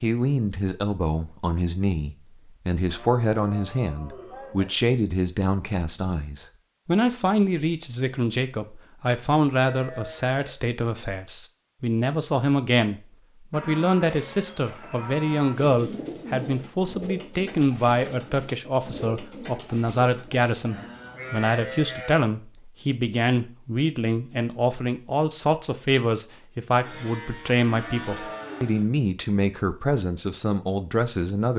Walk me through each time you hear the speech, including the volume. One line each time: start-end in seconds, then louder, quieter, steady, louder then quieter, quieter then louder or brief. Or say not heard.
0.0-31.5 steady.